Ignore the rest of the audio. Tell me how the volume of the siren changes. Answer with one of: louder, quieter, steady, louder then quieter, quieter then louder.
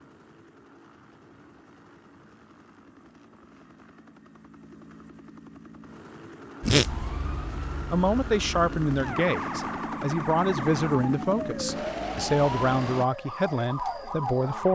louder.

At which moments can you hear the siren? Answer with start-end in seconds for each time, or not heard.
6.6-14.7.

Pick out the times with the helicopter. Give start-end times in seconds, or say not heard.
0.0-13.1.